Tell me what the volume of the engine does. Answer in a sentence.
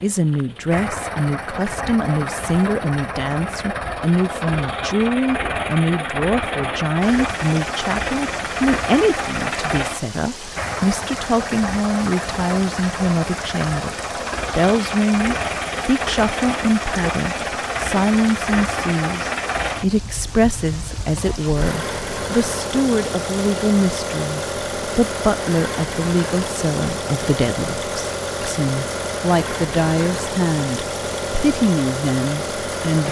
The volume of the engine stays about the same.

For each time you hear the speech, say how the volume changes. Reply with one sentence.
The speech can be heard from 0.0 to 13.9 s, at a steady volume; and from 14.6 to 33.0 s, at a steady volume.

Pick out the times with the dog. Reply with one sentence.
You can't hear the dog here.